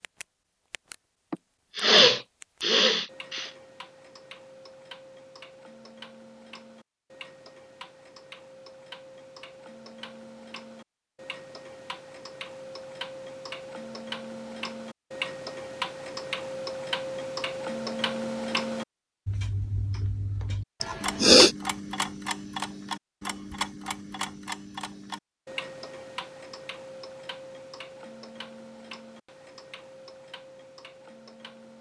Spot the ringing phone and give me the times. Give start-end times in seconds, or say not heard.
not heard.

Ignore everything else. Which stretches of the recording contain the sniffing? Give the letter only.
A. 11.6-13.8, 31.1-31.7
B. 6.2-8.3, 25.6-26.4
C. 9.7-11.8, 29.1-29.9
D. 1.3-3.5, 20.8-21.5
D.